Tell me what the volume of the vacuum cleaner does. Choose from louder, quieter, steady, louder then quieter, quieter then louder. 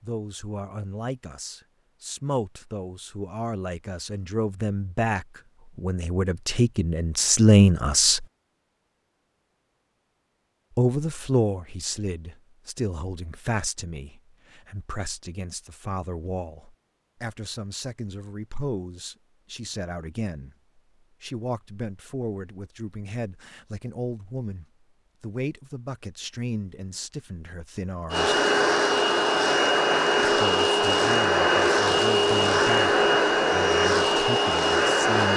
steady.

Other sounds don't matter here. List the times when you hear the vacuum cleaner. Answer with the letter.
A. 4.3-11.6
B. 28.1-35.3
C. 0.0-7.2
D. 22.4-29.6
B.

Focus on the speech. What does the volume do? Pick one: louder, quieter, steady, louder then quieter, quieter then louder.
louder then quieter.